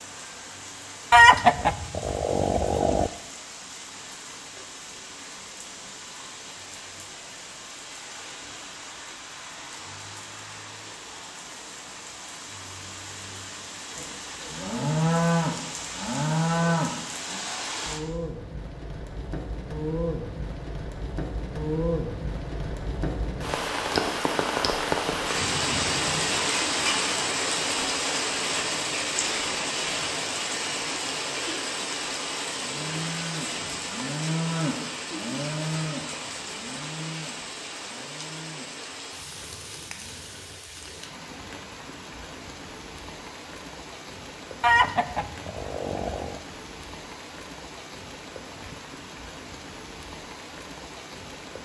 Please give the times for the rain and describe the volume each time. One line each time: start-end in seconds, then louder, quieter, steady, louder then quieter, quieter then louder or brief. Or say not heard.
0.0-51.6 louder then quieter.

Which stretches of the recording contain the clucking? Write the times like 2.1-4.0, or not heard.
1.1-3.1, 44.6-46.4.